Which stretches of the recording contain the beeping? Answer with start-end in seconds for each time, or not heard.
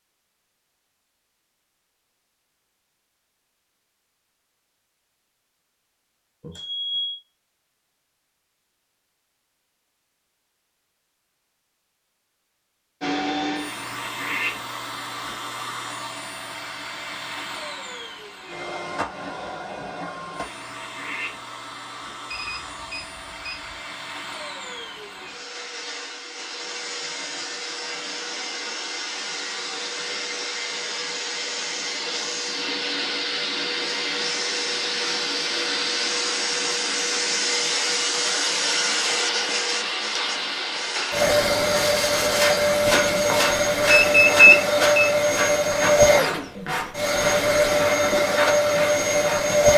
6.4-7.2, 22.3-23.8, 43.9-45.1.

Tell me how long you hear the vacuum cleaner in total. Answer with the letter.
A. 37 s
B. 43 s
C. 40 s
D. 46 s
A.